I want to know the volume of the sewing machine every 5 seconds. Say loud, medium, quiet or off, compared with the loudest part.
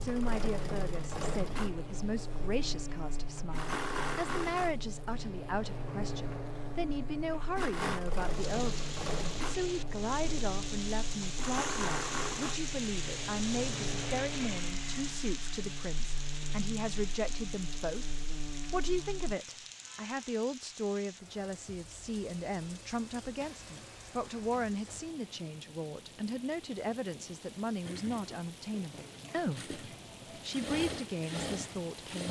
loud, loud, loud, off, off, medium, loud.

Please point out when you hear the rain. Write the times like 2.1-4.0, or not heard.
8.2-32.2.